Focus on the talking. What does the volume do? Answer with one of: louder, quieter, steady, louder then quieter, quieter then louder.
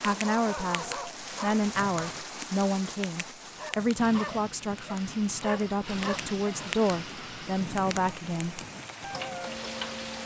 steady.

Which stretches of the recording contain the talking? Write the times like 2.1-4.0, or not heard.
0.0-8.7.